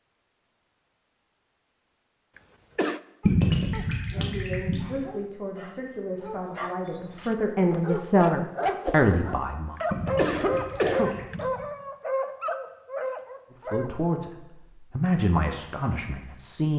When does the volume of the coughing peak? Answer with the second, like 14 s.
11 s.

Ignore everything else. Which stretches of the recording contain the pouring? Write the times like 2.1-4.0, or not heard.
3.2-5.0, 9.9-11.7.